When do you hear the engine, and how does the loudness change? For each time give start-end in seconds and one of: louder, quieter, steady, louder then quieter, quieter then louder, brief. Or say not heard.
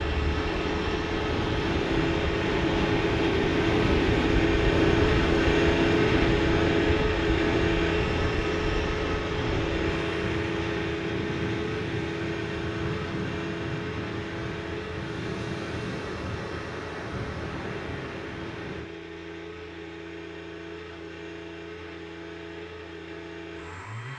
0.0-24.1 quieter.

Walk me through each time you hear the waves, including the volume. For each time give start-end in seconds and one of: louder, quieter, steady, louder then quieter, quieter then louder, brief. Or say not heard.
0.0-18.9 quieter.